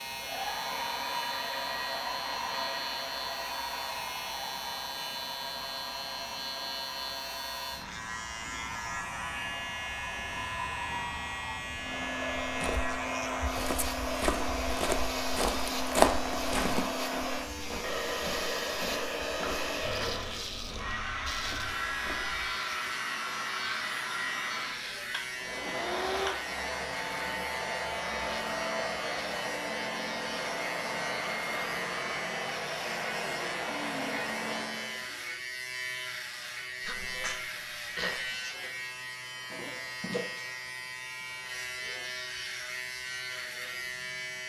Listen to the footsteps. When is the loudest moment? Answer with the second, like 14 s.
16 s.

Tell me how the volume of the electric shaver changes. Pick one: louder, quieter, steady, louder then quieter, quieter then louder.
steady.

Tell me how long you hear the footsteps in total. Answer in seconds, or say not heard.
10 s.